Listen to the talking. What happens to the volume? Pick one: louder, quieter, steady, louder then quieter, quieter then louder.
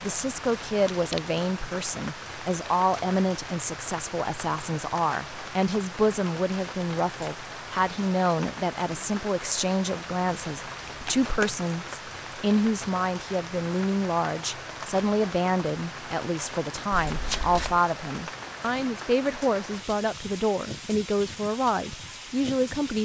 steady.